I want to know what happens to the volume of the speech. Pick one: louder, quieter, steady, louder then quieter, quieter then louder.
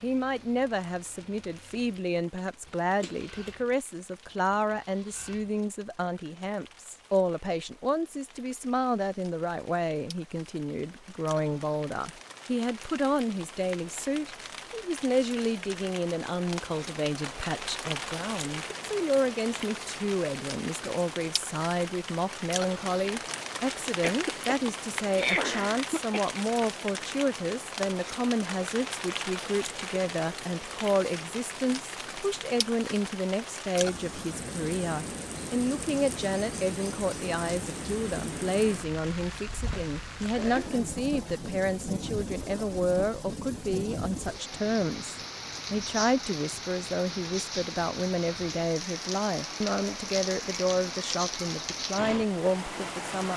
steady.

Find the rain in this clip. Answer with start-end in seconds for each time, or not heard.
0.0-53.3.